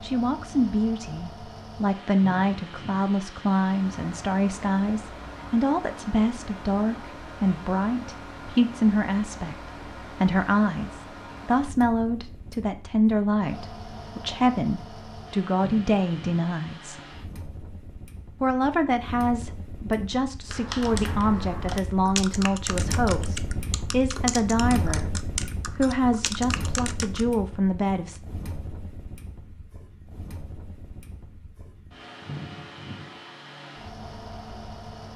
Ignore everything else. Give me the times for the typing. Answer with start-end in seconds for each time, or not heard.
20.4-27.2.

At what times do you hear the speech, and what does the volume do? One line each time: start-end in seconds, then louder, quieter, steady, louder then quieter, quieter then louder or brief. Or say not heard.
0.0-17.0 steady
18.4-28.2 steady.